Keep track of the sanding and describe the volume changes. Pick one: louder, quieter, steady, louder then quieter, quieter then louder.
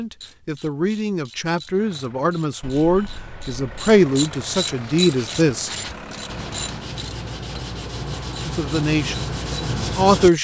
louder.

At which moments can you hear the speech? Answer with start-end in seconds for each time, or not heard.
0.0-6.2, 8.4-10.3.